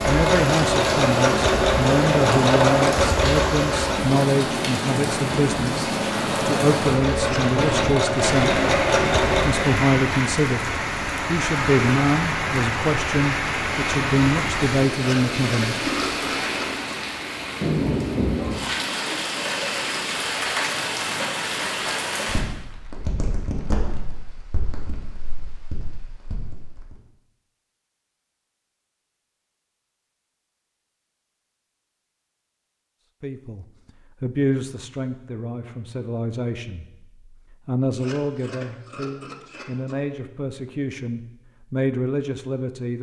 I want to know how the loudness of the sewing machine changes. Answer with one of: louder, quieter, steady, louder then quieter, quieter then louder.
quieter then louder.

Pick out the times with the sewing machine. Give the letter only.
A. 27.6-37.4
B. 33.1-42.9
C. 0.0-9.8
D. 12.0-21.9
C.